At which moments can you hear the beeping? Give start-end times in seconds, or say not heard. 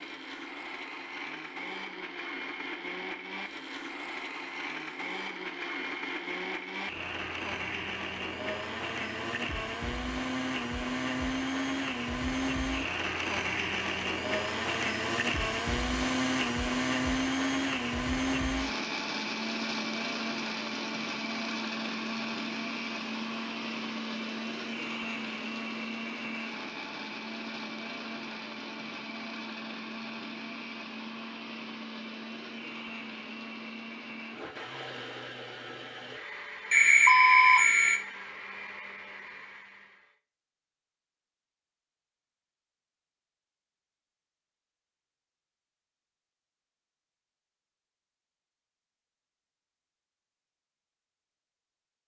36.7-38.0.